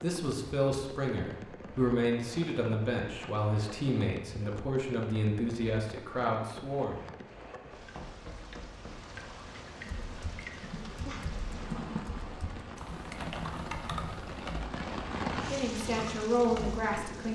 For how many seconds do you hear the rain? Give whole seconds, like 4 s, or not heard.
17 s.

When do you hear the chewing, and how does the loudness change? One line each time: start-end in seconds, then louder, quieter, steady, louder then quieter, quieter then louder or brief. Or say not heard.
not heard.